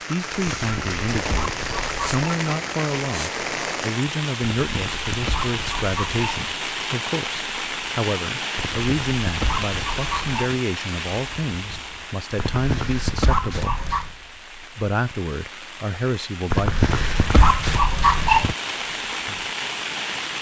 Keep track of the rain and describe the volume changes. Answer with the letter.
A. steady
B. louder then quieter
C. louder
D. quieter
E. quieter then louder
E.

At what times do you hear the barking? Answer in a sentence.
The barking can be heard from 0.5 to 2.3 s, from 4.7 to 6.5 s, from 8.6 to 10.6 s, from 12.3 to 14.2 s and from 16.5 to 18.6 s.